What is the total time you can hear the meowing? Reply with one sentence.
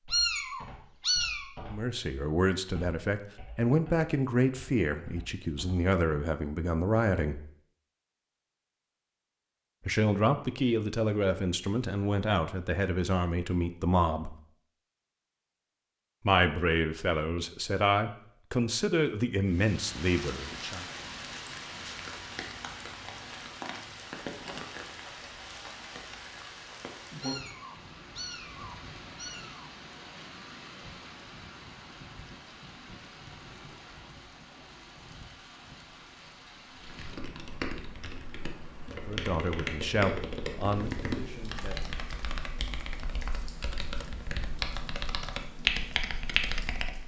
You can hear the meowing for 4 seconds altogether.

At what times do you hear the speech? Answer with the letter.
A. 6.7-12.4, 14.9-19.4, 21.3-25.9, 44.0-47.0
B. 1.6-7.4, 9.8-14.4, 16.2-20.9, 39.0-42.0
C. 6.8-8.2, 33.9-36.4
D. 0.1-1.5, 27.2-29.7
B.